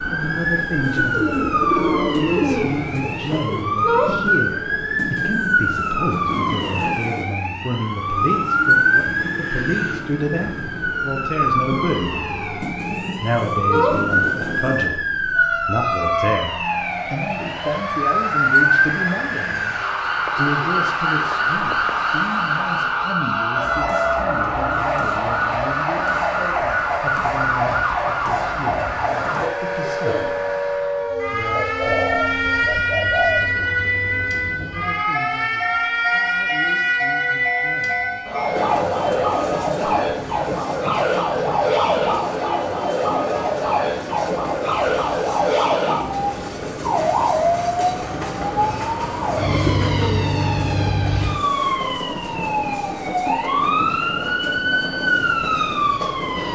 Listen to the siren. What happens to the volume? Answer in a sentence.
The loudness of the siren stays about the same.